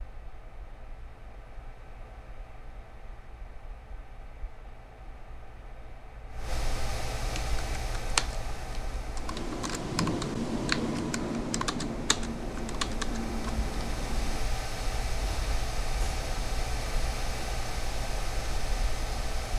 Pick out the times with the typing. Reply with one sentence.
The typing can be heard from 7.3 to 14.5 s.